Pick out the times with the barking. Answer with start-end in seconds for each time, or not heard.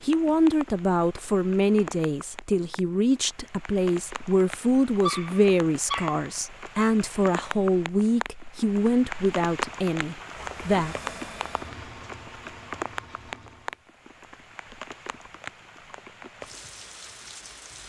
5.0-6.2.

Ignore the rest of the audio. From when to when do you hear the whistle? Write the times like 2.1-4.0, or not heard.
not heard.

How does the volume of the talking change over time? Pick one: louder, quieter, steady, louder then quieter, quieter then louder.
steady.